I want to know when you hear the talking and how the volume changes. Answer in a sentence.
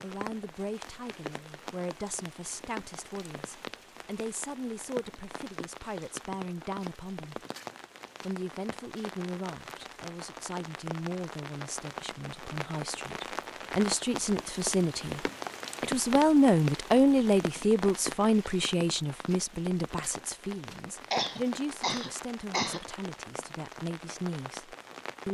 The talking can be heard from 0.0 to 7.4 s, at a steady volume; and from 8.2 to 25.2 s, getting louder then quieter.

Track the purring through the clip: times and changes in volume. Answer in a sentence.
The purring can't be heard in this clip.